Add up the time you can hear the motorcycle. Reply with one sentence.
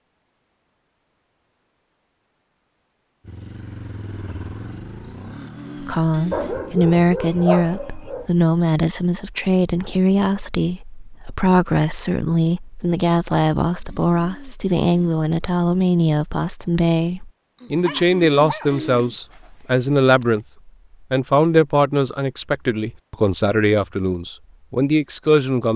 The motorcycle can be heard for 3 seconds in total.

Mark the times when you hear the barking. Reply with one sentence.
You can hear the barking from 6.3 to 8.2 s and from 17.9 to 20.3 s.